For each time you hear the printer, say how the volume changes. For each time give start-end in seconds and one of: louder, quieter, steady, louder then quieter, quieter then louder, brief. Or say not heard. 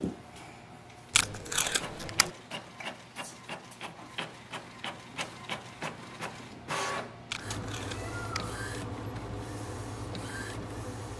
0.0-11.1 louder.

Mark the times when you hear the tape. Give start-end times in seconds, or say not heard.
1.1-2.3, 7.3-8.5.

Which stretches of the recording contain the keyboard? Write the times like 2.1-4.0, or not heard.
not heard.